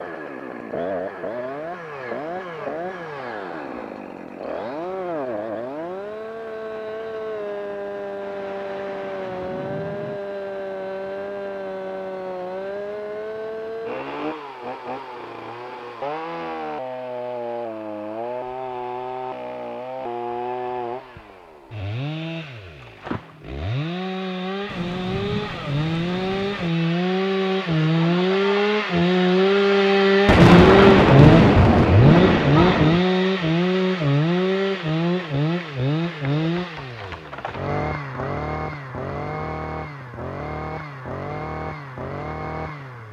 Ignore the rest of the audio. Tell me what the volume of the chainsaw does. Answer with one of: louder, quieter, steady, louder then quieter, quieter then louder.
louder then quieter.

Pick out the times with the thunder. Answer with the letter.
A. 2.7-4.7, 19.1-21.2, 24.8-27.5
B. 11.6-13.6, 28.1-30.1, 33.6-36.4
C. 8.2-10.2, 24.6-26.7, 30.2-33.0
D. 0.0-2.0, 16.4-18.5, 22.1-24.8
C.